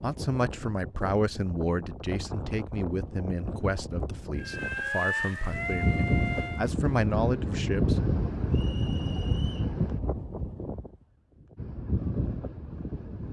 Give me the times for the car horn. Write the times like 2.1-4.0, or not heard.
not heard.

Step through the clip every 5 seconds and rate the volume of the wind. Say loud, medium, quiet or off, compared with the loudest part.
medium, loud, medium.